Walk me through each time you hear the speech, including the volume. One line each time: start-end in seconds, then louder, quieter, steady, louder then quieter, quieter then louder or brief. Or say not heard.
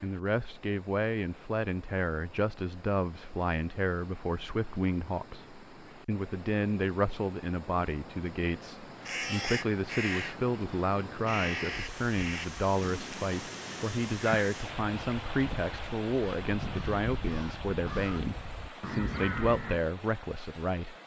0.0-21.0 steady.